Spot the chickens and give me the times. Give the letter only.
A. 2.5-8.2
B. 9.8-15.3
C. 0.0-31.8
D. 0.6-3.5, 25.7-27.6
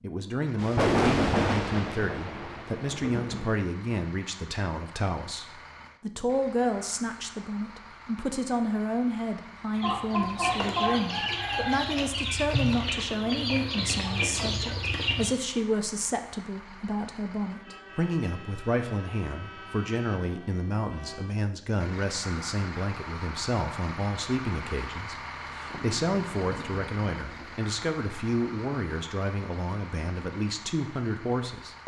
B.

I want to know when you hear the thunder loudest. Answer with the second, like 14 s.
1 s.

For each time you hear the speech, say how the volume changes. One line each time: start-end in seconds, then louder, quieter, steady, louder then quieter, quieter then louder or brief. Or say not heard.
0.0-31.8 steady.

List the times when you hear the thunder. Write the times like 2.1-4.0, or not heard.
0.6-3.5, 25.7-27.6.